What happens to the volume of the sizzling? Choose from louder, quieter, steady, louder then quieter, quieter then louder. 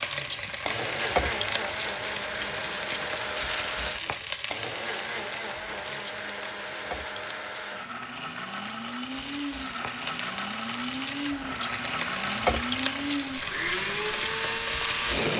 quieter then louder.